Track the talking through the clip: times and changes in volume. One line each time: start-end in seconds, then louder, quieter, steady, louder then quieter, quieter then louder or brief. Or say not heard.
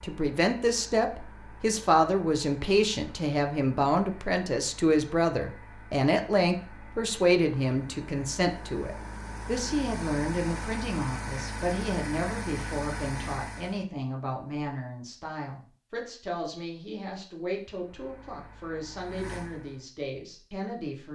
0.0-21.1 quieter.